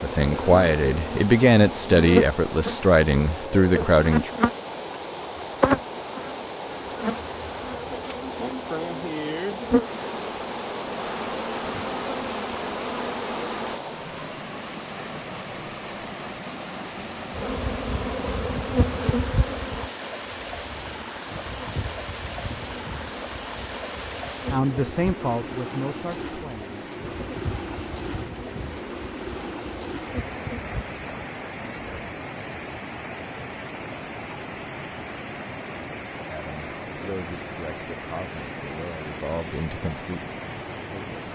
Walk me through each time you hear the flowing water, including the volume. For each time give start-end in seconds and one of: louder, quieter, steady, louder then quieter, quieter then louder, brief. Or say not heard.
0.0-41.3 steady.